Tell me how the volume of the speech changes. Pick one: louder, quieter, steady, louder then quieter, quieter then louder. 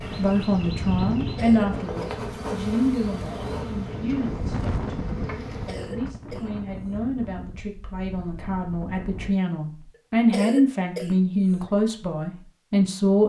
quieter then louder.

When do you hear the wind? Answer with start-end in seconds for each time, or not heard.
0.0-9.4.